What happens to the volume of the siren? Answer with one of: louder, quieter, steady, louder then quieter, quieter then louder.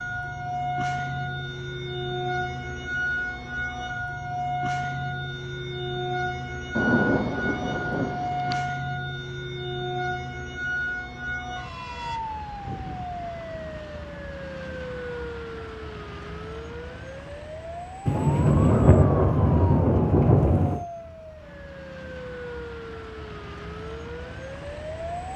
quieter.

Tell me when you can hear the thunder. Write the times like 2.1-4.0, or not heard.
6.8-8.7, 18.1-20.9.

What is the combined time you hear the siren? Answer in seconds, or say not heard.
25 s.